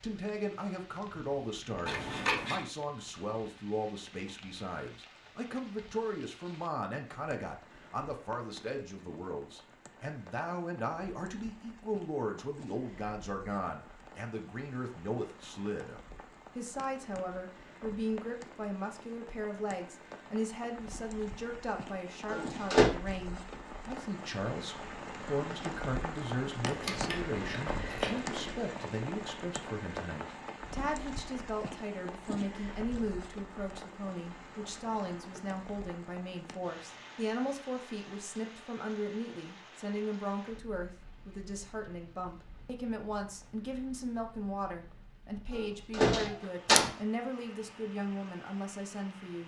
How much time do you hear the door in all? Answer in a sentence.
You can hear the door for 2 seconds altogether.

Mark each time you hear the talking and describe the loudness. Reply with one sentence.
The talking can be heard from 0.0 to 49.4 s, at a steady volume.